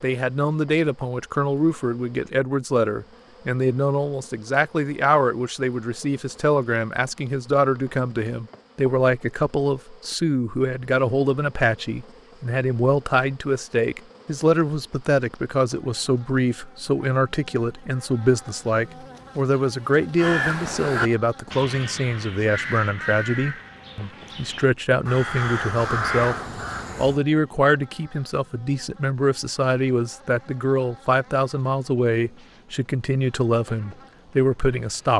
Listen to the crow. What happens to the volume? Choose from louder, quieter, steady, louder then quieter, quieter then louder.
quieter then louder.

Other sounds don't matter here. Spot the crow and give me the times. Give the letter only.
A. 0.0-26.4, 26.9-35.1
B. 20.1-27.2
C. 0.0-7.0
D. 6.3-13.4
B.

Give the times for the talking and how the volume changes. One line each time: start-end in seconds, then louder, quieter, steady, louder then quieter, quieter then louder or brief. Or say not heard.
0.0-26.4 steady
26.9-35.1 steady.